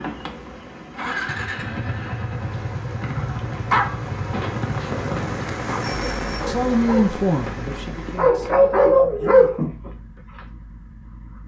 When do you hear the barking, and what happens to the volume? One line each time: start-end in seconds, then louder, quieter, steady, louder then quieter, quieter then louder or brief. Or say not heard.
3.1-9.9 quieter then louder.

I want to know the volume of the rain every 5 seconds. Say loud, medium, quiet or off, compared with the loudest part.
medium, loud, off.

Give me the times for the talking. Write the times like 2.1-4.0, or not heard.
6.5-9.7.